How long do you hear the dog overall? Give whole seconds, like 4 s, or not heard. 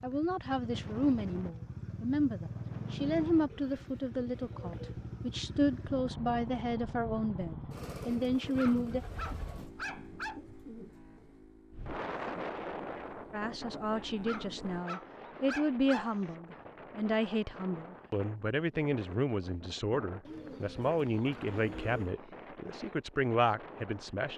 4 s.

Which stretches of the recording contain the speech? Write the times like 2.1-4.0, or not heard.
0.0-9.0, 13.3-24.3.